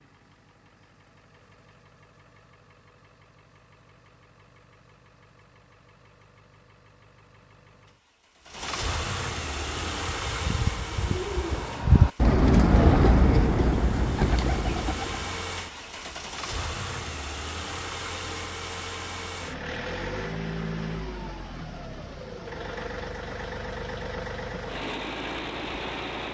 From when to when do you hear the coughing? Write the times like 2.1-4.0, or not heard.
not heard.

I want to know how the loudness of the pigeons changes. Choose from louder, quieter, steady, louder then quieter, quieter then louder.
louder then quieter.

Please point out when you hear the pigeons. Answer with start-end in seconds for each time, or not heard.
9.6-15.4.